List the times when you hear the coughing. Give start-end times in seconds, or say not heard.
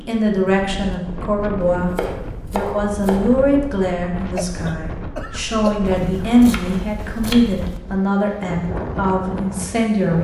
4.2-6.2.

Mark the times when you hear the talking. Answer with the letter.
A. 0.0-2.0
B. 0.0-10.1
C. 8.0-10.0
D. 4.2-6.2
B.